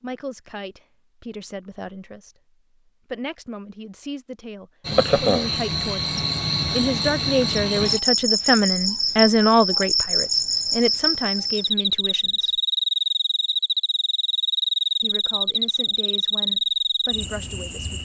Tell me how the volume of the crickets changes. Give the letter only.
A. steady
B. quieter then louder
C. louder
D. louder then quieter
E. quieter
A.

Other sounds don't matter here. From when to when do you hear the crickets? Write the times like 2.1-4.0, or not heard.
4.8-18.0.